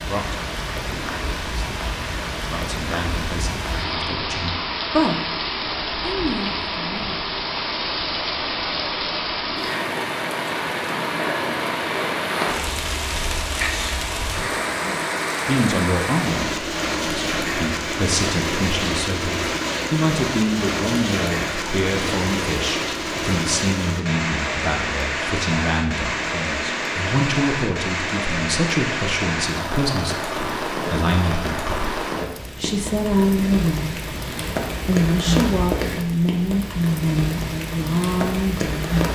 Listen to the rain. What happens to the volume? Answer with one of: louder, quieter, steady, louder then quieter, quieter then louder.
steady.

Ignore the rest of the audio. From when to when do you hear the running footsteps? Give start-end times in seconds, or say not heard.
not heard.